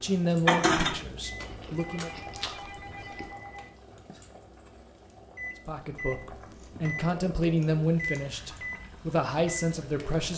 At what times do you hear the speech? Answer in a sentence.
The speech can be heard from 0.0 to 2.1 s and from 5.7 to 10.3 s.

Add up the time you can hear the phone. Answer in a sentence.
You can hear the phone for 2 seconds altogether.